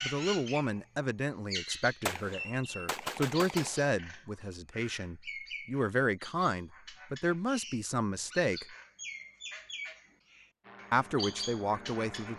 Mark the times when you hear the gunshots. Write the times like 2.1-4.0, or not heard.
2.0-4.0.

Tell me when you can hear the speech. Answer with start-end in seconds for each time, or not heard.
0.0-8.8, 10.9-12.3.